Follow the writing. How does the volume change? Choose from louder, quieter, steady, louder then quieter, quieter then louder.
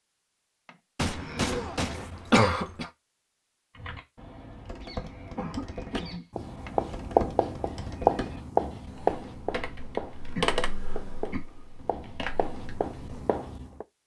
quieter.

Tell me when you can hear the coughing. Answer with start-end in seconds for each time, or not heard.
0.9-2.9, 4.8-6.2, 10.3-11.4.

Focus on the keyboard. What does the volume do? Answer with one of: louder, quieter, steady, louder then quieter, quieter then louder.
louder then quieter.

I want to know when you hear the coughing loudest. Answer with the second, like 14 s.
2 s.